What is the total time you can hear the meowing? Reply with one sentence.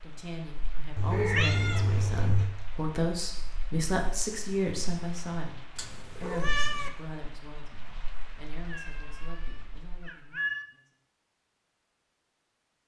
The meowing can be heard for 5 seconds in total.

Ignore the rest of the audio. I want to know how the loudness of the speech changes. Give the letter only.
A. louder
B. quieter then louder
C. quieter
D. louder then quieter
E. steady
D.